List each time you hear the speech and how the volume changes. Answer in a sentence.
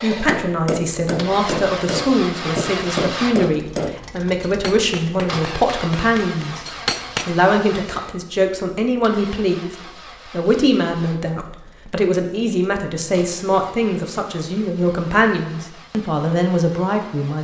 You can hear the speech from 0.0 to 6.6 s, at a steady volume; and from 7.2 to 17.4 s, at a steady volume.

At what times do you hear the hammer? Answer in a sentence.
You can hear the hammer from 0.2 to 7.3 s.